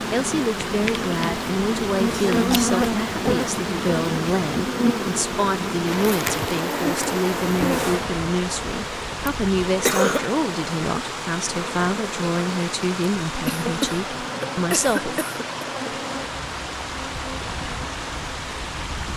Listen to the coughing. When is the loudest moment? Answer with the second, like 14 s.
10 s.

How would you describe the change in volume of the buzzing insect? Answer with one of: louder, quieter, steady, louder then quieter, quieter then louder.
quieter.